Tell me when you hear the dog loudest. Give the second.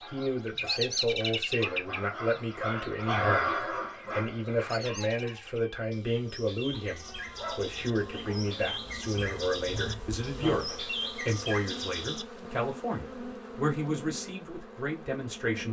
3 s.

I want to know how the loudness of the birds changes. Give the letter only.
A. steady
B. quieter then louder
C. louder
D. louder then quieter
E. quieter
B.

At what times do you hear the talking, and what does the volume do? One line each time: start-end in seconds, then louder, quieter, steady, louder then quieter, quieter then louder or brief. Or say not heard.
0.1-15.6 steady.